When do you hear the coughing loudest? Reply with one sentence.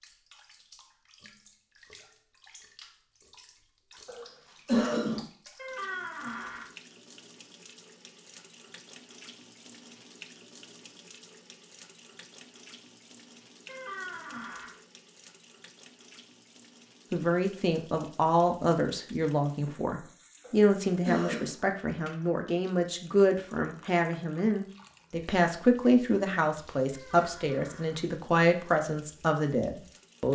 The loudest moment of the coughing is at 5 seconds.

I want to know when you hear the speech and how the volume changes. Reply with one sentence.
You can hear the speech from 17.1 to 30.3 s, at a steady volume.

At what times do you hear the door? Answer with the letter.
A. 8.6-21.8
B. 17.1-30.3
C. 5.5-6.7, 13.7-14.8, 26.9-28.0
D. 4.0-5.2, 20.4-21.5
C.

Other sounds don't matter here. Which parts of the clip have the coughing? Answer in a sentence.
You can hear the coughing from 4.0 to 5.2 s and from 20.4 to 21.5 s.